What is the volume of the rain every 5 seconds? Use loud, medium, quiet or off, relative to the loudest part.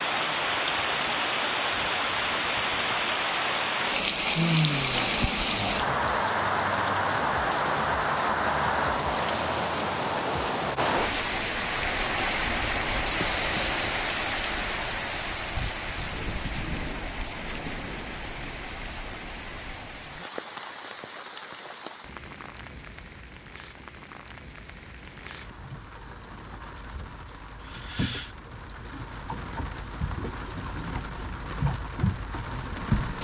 loud, loud, loud, medium, quiet, quiet, medium.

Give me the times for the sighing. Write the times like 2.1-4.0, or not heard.
4.3-5.2, 13.2-13.8, 27.6-28.3.